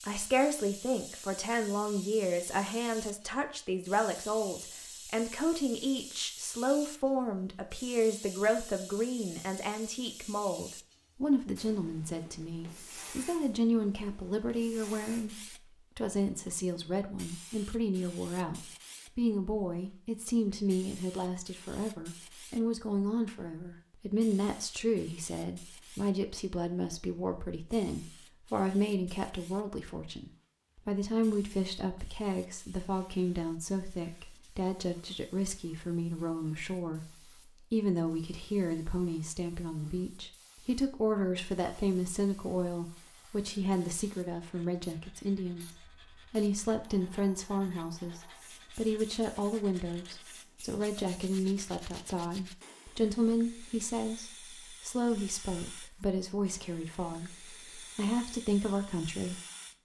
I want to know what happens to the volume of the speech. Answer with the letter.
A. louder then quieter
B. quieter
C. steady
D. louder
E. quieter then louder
C.